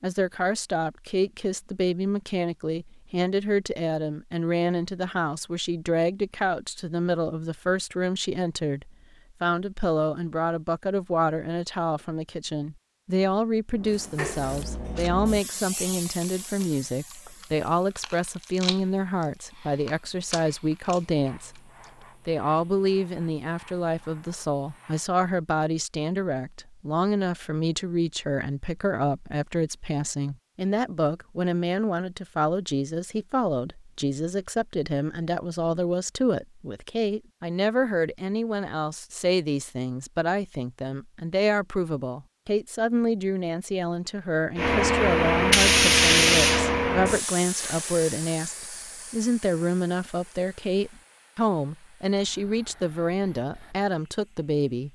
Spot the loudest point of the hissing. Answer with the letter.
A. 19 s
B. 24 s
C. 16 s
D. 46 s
D.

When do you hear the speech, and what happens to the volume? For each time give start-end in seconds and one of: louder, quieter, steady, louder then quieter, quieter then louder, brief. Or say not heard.
0.0-21.6 steady
22.2-54.8 steady.